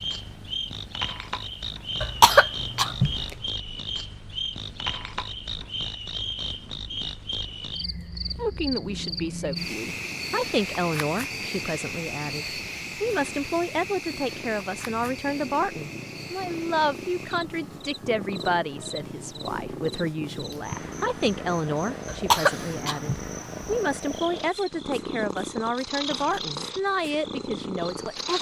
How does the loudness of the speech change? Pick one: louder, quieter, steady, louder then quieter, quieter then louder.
steady.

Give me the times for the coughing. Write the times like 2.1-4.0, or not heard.
2.0-3.2, 22.1-23.8.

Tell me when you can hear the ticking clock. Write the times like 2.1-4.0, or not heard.
not heard.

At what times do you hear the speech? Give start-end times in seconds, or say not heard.
8.3-28.3.